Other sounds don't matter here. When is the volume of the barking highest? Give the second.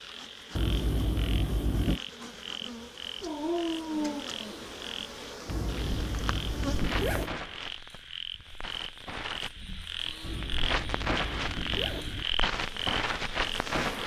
4 s.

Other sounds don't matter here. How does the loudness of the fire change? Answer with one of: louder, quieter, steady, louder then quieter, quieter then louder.
quieter then louder.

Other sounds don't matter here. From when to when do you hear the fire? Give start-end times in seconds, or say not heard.
5.8-14.0.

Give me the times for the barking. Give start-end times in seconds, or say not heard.
3.2-5.7.